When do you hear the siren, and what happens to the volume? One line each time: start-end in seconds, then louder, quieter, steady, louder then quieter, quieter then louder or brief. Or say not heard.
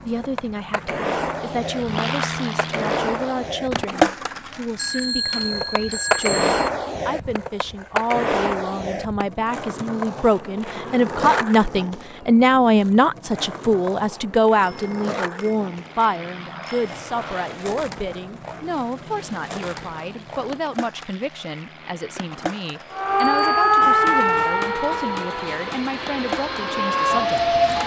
22.9-27.8 quieter then louder.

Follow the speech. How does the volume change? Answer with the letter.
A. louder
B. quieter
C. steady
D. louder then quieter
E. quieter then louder
D.